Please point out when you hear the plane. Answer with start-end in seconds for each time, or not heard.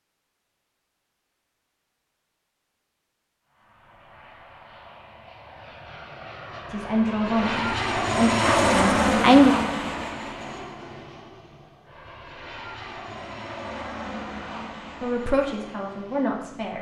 3.6-16.7.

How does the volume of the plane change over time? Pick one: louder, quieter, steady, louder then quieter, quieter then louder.
louder then quieter.